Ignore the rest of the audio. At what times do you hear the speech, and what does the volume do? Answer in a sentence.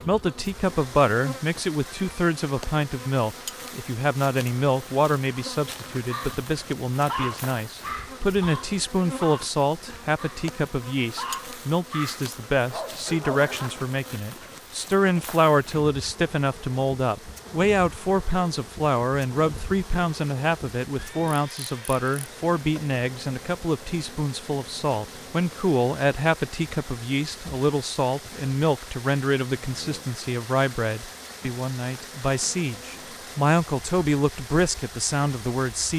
You can hear the speech from 0.0 to 35.9 s, at a steady volume.